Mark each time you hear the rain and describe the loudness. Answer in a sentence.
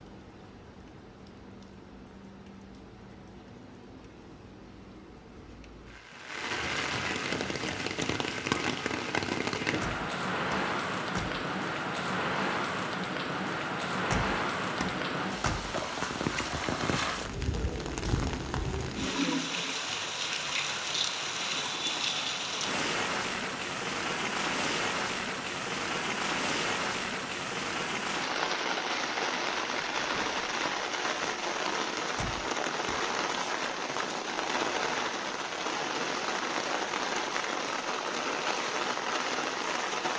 You can hear the rain from 0.0 to 40.1 s, getting louder.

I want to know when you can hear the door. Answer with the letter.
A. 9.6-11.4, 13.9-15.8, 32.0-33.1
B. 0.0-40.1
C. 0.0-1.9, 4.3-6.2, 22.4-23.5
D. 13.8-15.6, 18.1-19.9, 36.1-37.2
A.